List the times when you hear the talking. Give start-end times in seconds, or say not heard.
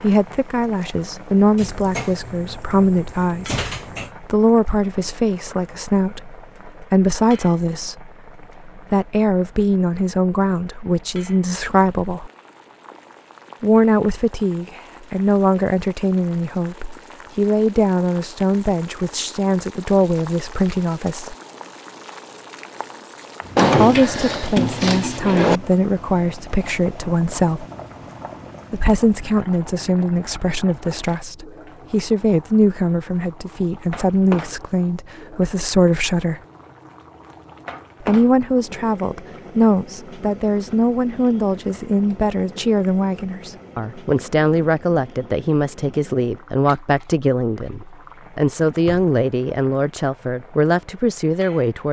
0.0-12.3, 13.6-21.4, 23.8-27.6, 28.7-36.4, 38.0-51.8.